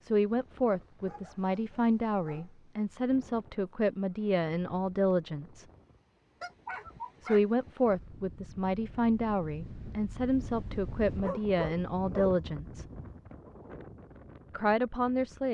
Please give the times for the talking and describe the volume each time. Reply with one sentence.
You can hear the talking from 0.0 to 5.7 s, at a steady volume; from 7.2 to 12.8 s, at a steady volume; and briefly from 14.5 to 15.4 s.